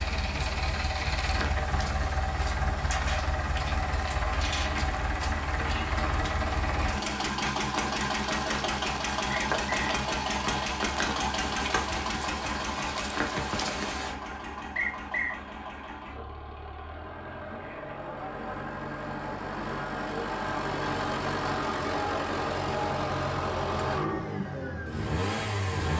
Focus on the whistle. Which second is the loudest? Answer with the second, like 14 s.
15 s.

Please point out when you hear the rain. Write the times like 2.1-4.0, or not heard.
0.0-14.2.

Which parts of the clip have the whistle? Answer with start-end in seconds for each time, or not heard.
9.3-9.9, 14.8-15.4.